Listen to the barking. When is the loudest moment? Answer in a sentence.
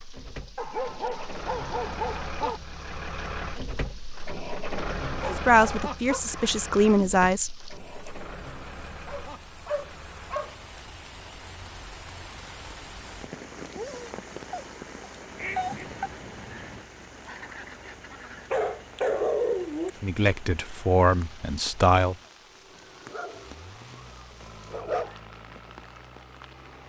The volume of the barking peaks at 19 seconds.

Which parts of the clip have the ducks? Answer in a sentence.
You can hear the ducks from 15.2 to 18.6 s.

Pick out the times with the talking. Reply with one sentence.
The talking can be heard from 5.2 to 7.6 s and from 20.0 to 22.1 s.